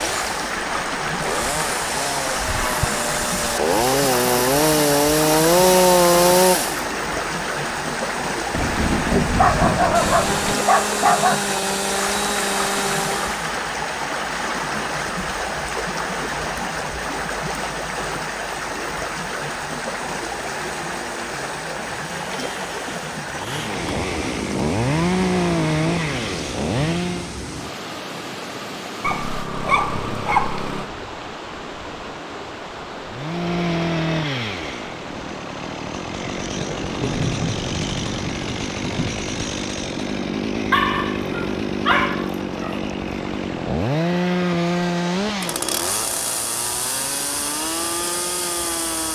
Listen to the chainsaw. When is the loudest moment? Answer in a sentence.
The volume of the chainsaw peaks at 6 seconds.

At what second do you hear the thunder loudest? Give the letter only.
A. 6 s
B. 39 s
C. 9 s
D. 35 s
C.